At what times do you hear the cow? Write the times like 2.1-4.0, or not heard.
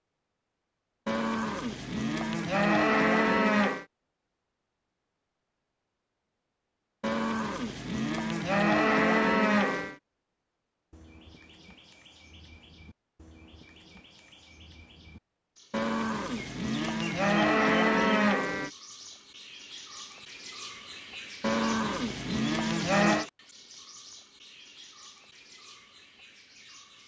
1.1-3.9, 7.0-9.9, 15.7-18.7, 21.4-23.2.